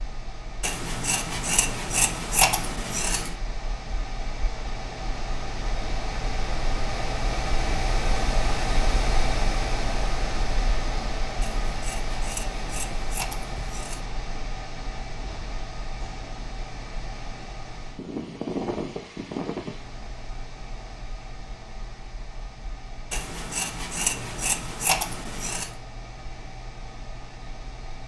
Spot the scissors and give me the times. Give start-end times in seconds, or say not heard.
0.6-3.4, 11.4-14.1, 23.1-25.7.